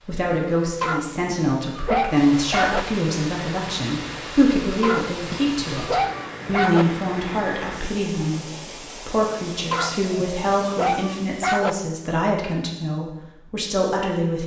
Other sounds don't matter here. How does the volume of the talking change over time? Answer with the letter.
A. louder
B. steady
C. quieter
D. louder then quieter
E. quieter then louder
B.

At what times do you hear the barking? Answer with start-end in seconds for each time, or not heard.
0.8-2.8, 4.8-6.8, 9.7-11.7.